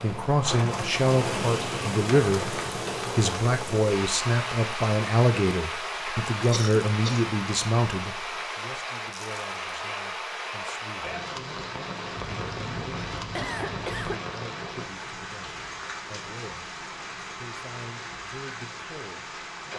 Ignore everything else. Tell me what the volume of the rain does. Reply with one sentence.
The volume of the rain goes down.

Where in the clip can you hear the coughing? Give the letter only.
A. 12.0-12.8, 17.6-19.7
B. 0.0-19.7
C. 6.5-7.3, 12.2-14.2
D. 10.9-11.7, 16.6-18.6
C.